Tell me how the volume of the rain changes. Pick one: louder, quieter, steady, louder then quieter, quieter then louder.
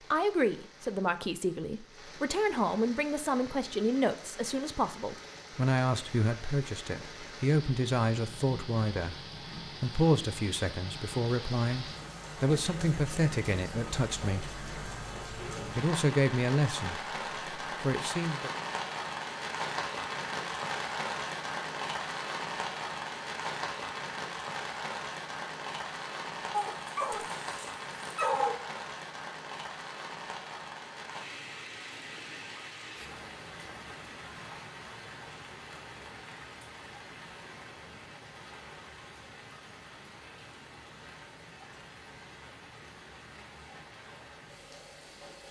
louder then quieter.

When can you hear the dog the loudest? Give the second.
28 s.